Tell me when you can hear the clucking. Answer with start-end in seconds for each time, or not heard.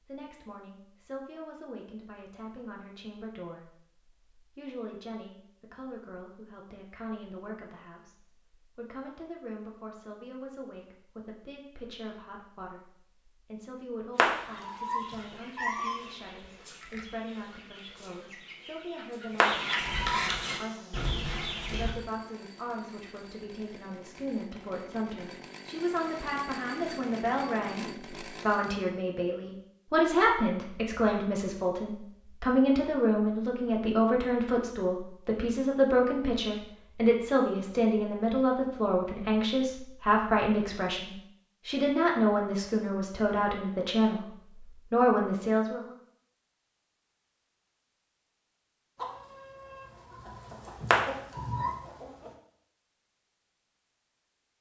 14.2-21.9, 49.0-52.4.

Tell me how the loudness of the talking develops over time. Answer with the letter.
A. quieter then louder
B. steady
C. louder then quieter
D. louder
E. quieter
D.